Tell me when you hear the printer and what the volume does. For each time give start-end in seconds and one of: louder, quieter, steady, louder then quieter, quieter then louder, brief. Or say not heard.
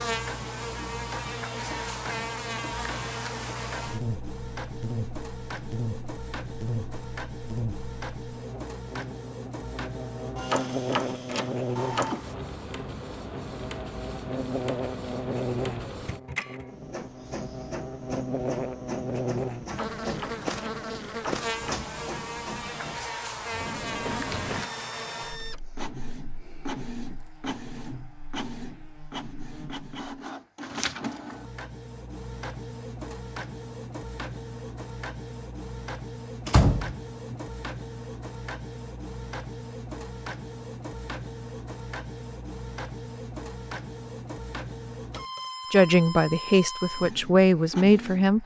0.0-48.4 steady.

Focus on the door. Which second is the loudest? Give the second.
37 s.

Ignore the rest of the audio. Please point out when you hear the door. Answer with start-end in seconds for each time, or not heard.
10.5-12.2, 19.8-21.8, 36.5-37.4.